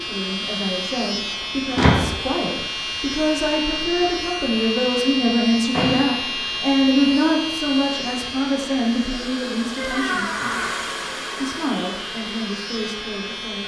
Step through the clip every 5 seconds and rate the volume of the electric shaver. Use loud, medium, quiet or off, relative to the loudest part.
loud, loud, medium.